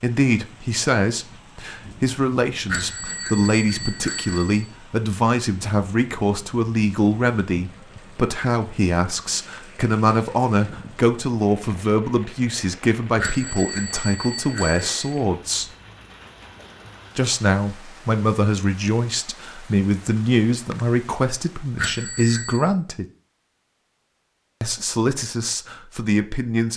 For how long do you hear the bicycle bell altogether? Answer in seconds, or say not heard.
5 s.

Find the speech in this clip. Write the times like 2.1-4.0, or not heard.
0.0-15.7, 17.1-23.1, 24.6-26.7.